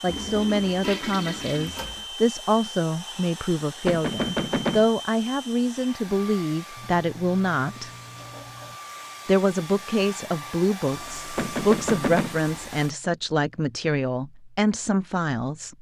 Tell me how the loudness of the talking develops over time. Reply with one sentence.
The volume of the talking stays about the same.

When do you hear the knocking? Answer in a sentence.
The knocking can be heard from 3.9 to 4.9 s and from 11.3 to 12.4 s.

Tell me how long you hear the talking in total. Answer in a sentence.
The talking can be heard for 14 seconds in total.